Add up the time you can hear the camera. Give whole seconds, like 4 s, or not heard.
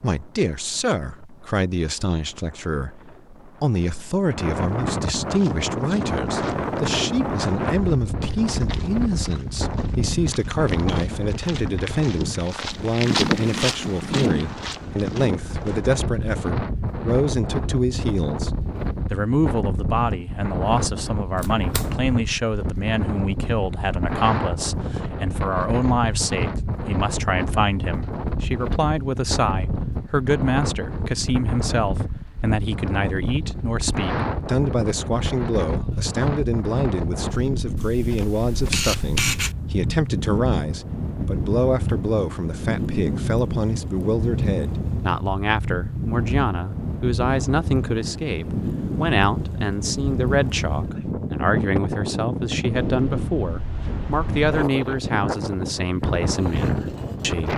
2 s.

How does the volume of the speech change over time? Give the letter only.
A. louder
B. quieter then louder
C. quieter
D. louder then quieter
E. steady
E.